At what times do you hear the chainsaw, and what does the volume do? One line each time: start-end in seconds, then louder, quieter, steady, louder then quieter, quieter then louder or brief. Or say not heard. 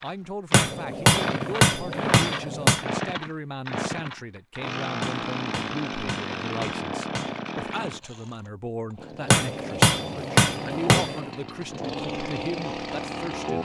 0.0-13.6 quieter then louder.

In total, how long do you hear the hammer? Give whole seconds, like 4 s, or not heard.
7 s.